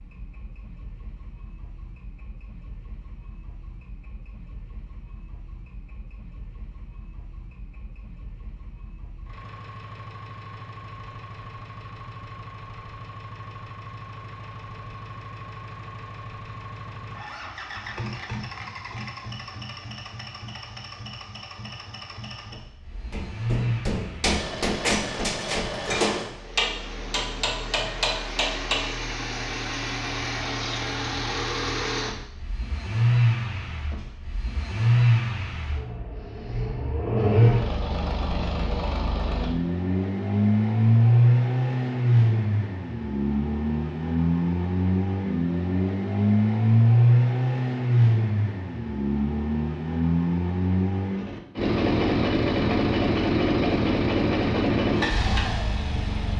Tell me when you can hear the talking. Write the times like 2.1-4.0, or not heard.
not heard.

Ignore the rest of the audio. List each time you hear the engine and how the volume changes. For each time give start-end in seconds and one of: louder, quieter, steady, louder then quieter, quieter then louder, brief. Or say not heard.
0.0-56.3 louder.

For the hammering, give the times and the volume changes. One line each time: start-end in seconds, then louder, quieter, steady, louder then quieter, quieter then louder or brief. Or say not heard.
23.1-28.9 steady.